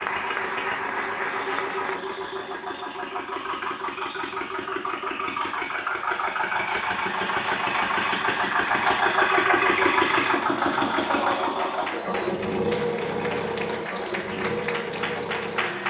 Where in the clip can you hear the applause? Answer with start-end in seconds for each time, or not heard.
0.0-2.0, 7.4-15.8.